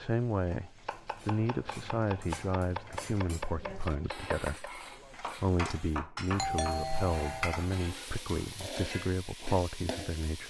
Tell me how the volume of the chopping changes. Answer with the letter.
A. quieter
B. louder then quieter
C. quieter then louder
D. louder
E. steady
D.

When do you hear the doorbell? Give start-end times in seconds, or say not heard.
6.3-7.5.